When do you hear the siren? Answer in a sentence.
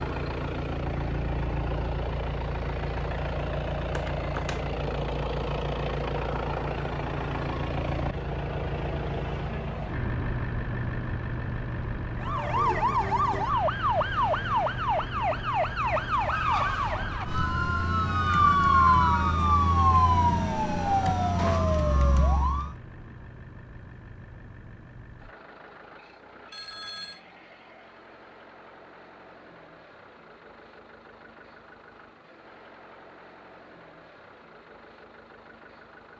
You can hear the siren from 12.2 to 22.8 s.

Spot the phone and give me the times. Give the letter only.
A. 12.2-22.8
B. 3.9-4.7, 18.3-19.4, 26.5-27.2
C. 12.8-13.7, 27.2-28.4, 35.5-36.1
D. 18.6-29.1
B.